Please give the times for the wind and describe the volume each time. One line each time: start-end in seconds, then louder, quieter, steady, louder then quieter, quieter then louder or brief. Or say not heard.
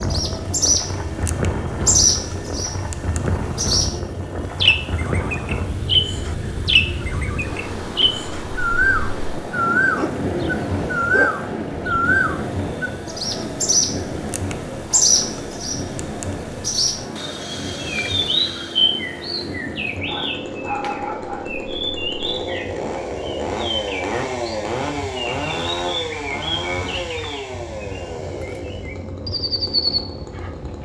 0.0-30.7 quieter.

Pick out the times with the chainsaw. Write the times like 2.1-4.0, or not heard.
0.2-30.7.